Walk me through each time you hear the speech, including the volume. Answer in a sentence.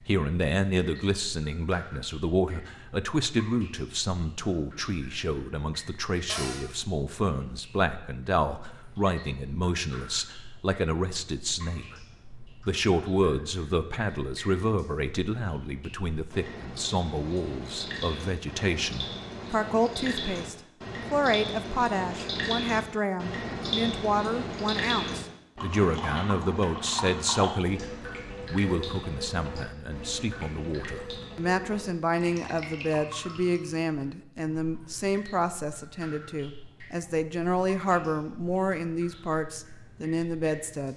You can hear the speech from 0.0 to 40.9 s, at a steady volume.